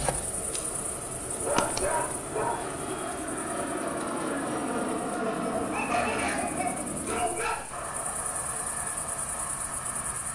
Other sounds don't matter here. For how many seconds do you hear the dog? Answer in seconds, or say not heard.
4 s.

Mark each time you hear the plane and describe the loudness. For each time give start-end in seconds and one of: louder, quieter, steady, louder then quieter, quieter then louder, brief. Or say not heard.
0.0-10.3 louder then quieter.